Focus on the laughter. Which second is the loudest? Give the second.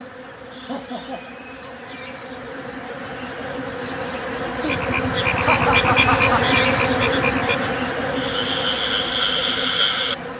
6 s.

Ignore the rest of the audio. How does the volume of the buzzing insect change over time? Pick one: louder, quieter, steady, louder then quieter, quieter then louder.
louder then quieter.